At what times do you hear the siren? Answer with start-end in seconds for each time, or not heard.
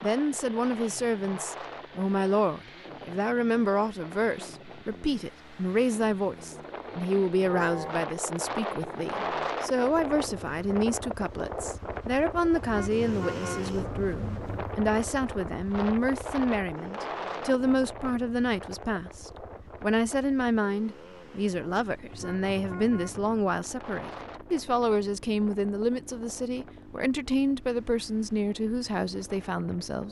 not heard.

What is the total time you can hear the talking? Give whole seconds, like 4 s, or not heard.
30 s.